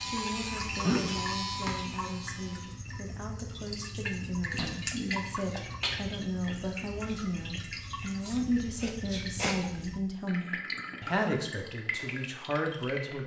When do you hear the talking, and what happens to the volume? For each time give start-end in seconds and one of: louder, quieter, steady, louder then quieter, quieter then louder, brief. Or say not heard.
0.0-13.2 louder.